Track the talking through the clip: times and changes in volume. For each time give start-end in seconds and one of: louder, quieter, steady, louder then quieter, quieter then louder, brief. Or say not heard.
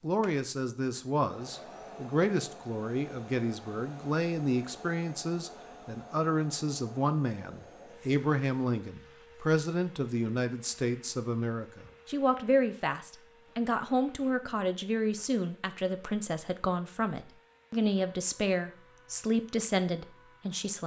0.0-20.8 steady.